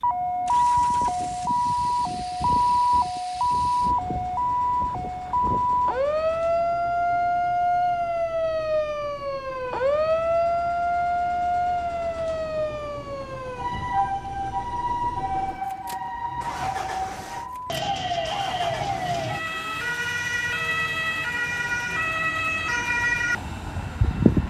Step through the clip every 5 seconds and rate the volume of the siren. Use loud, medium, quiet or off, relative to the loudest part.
loud, loud, loud, medium, loud.